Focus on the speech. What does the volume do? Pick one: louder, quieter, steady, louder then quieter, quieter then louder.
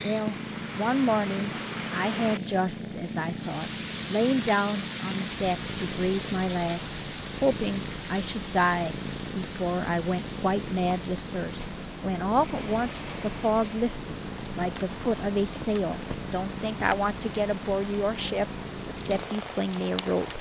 steady.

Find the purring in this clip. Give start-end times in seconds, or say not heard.
0.0-20.3.